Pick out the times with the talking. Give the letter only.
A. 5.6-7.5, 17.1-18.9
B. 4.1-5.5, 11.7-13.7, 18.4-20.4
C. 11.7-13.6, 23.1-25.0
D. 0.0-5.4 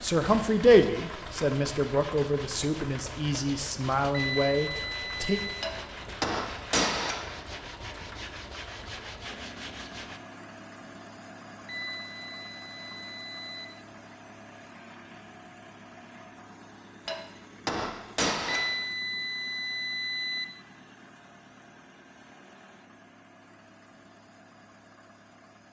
D.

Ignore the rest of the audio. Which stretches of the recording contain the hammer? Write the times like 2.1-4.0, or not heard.
5.6-7.5, 17.1-18.9.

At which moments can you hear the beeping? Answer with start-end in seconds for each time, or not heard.
4.1-5.5, 11.7-13.7, 18.4-20.4.